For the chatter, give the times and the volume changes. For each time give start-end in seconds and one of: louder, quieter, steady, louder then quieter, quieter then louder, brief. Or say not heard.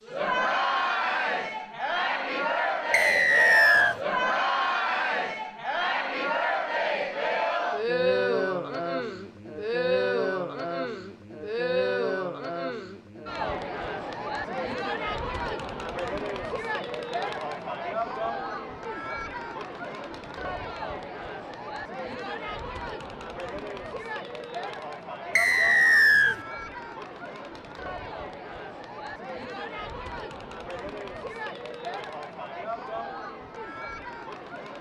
0.1-34.7 quieter.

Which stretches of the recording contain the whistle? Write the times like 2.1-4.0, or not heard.
2.9-4.0, 25.4-26.4.